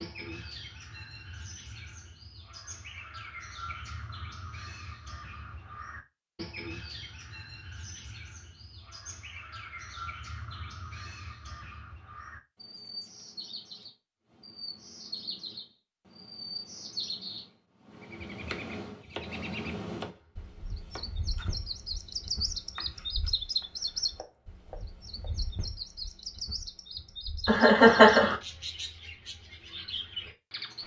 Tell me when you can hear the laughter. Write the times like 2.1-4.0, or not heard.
27.4-28.4.